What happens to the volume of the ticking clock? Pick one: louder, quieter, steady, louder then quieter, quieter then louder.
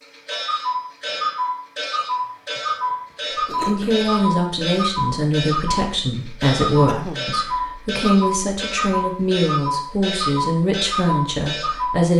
steady.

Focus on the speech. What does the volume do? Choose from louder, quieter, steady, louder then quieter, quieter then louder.
steady.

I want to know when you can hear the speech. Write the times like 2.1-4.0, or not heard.
3.6-12.1.